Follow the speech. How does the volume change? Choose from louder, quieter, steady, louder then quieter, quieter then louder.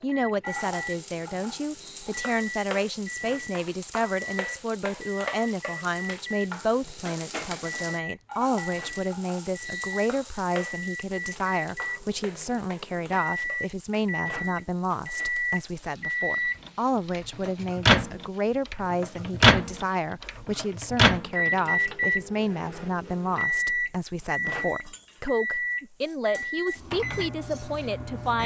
steady.